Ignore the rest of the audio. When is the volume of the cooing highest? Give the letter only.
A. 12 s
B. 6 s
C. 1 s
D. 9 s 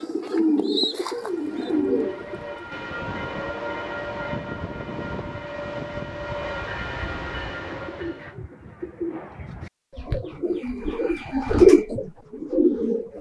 A.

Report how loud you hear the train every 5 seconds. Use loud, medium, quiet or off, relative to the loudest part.
loud, loud, off.